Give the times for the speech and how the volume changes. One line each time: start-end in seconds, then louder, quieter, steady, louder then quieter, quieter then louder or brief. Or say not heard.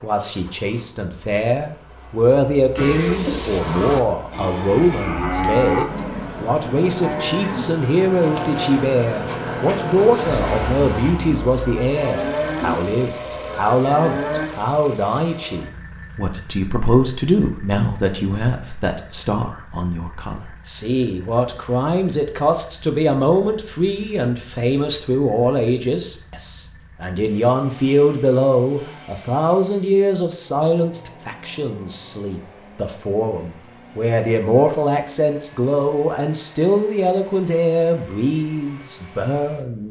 0.0-39.8 steady.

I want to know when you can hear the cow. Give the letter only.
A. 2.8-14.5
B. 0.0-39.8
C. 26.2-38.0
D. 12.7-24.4
A.